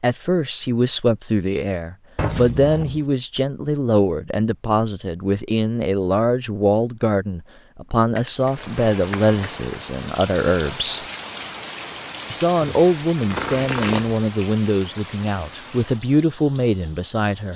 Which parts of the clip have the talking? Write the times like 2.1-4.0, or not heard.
0.0-11.1, 12.3-17.5.